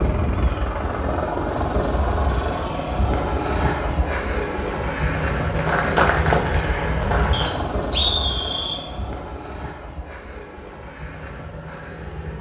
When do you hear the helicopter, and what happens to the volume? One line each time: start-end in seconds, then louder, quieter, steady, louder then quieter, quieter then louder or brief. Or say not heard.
0.0-12.3 quieter.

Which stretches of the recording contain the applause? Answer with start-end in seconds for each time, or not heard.
5.3-7.6.